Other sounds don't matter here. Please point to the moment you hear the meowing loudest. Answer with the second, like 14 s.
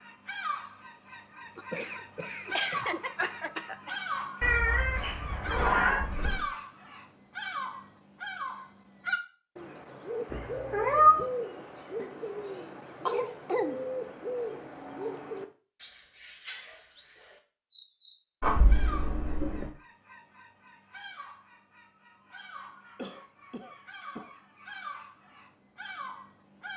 11 s.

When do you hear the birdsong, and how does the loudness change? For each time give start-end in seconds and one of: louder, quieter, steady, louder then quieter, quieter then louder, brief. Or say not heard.
0.0-26.7 quieter.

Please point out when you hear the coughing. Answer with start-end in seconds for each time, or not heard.
1.6-4.0, 11.9-13.8, 22.9-24.3.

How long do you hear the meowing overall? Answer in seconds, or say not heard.
4 s.